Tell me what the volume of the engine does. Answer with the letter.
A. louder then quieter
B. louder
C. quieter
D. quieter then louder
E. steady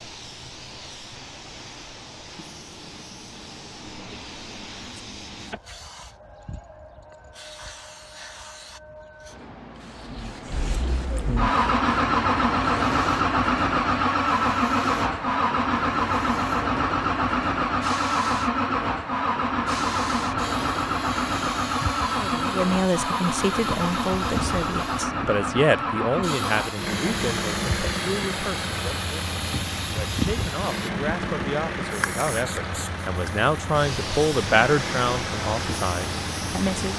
C.